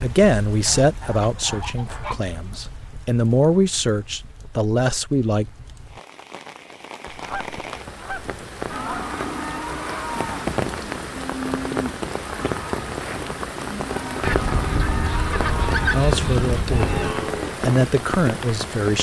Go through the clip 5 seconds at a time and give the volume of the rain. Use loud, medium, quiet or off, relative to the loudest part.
quiet, medium, loud, loud.